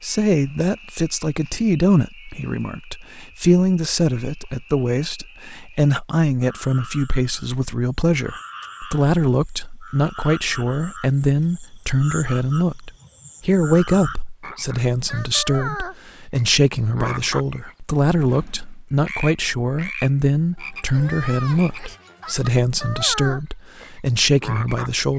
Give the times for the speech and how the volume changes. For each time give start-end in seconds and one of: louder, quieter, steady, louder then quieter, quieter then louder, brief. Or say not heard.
0.0-25.1 steady.